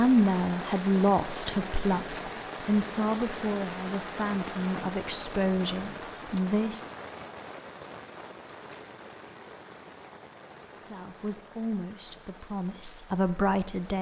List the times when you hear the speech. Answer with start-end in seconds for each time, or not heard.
0.0-6.8, 10.7-13.9.